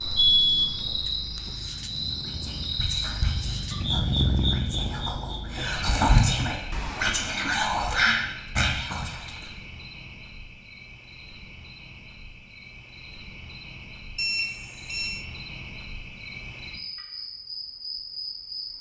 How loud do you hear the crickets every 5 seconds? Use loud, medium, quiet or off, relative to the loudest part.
loud, medium, quiet, medium.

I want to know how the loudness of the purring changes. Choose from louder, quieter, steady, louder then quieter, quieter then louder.
louder.